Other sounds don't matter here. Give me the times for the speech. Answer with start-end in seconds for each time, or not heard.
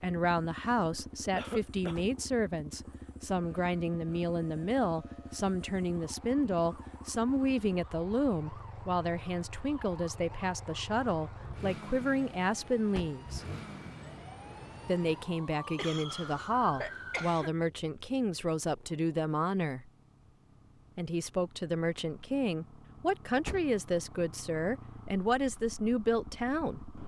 0.0-13.4, 14.8-19.9, 20.9-26.8.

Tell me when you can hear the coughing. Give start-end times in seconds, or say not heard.
1.4-2.0, 15.8-17.5.